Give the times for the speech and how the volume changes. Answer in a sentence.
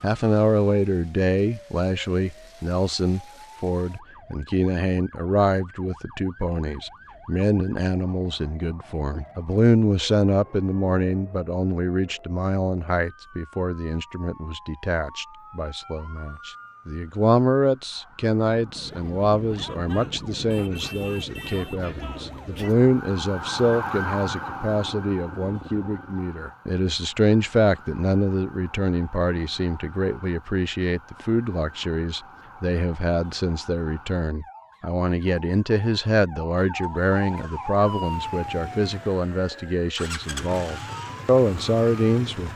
The speech can be heard from 0.0 to 42.5 s, at a steady volume.